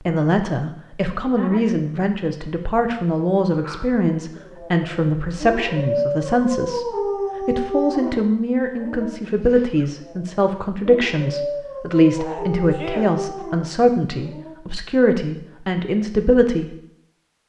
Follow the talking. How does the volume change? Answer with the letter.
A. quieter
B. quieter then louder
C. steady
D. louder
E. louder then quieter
C.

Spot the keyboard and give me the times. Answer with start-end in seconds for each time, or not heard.
not heard.